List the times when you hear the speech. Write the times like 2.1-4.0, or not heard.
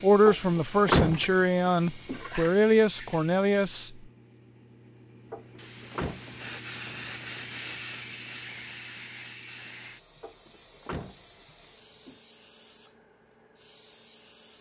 0.0-3.9.